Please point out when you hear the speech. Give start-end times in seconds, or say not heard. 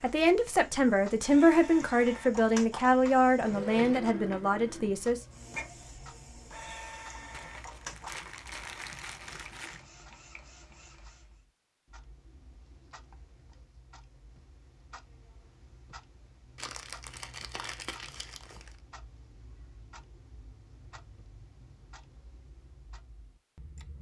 0.0-5.2.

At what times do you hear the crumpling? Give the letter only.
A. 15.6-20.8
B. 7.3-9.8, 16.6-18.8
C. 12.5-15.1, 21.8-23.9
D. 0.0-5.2
B.